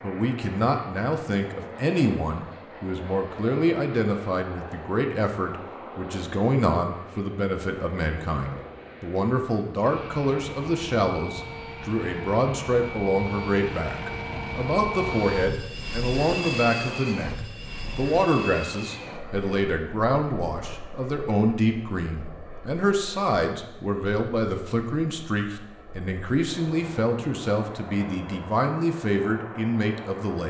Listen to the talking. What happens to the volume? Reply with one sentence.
The volume of the talking stays about the same.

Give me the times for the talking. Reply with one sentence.
The talking can be heard from 0.0 to 30.4 s.